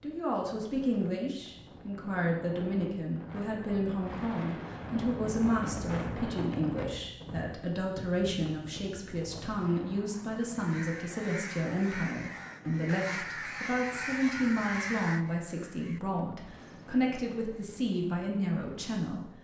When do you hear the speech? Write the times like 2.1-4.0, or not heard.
0.0-19.3.